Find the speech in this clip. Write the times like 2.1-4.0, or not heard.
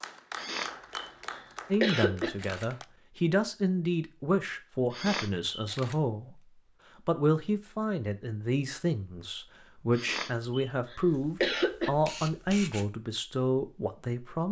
1.7-6.4, 7.0-14.4.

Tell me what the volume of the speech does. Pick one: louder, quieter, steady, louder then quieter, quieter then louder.
steady.